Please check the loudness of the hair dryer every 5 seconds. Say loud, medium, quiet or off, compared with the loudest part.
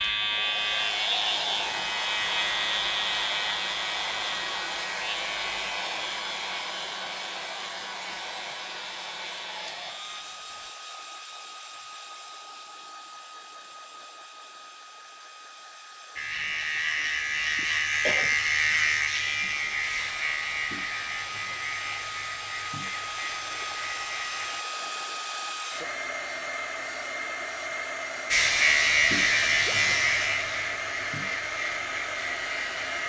loud, loud, medium, medium, loud, loud, loud.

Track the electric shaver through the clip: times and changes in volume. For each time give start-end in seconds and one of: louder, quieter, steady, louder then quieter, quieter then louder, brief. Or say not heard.
0.0-10.7 quieter
16.1-24.6 quieter
28.3-33.0 quieter.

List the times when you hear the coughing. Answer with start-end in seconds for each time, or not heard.
17.6-18.4.